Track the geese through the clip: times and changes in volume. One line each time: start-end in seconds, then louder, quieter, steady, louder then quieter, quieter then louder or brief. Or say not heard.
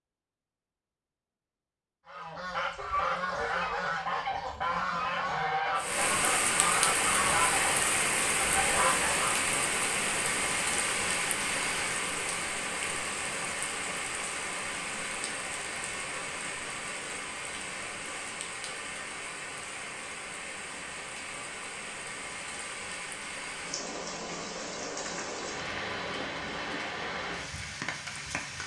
2.0-9.4 steady.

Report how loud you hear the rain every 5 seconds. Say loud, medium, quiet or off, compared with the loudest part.
off, loud, loud, medium, medium, medium.